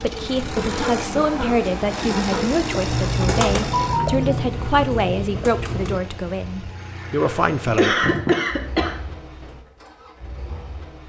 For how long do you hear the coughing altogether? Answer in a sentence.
You can hear the coughing for 4 seconds altogether.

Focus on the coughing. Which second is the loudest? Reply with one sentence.
The loudest moment of the coughing is at 8 seconds.